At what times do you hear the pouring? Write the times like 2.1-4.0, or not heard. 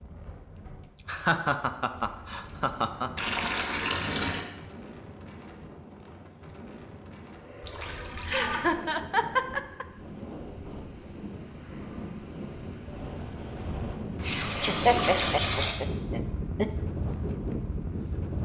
3.1-4.5, 7.6-8.7, 14.2-15.8.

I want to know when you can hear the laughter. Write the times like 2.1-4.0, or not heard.
0.8-3.1, 8.2-9.8, 14.7-16.6.